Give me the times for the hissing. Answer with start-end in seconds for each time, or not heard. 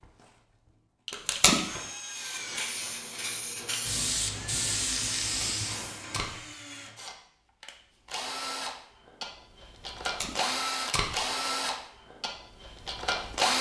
2.0-6.0.